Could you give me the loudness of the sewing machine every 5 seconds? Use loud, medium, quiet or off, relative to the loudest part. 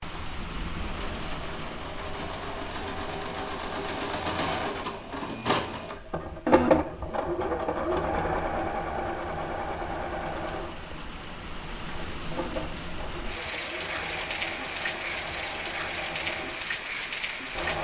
medium, loud, medium, medium.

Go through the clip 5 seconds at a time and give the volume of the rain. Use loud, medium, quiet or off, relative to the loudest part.
medium, quiet, loud, loud.